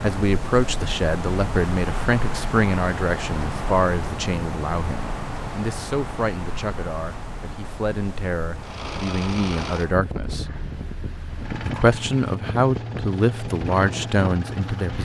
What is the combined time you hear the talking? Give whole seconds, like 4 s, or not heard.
14 s.